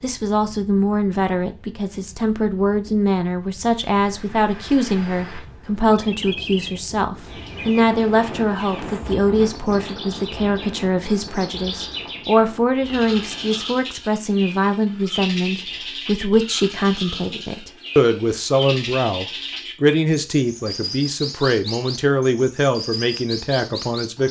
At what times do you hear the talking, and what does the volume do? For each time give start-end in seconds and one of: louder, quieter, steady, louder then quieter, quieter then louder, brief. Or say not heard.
0.0-24.2 steady.